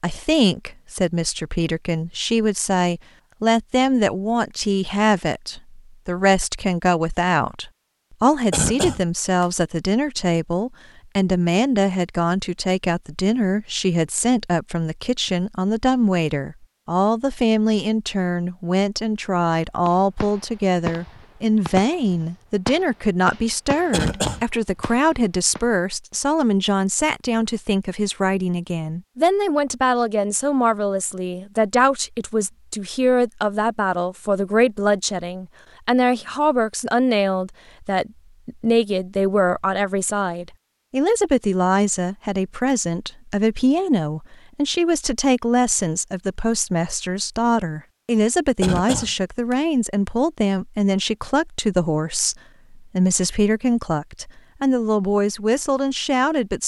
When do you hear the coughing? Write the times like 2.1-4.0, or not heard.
8.5-9.4, 23.9-24.9, 48.6-49.5.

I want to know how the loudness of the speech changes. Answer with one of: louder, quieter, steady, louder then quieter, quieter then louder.
steady.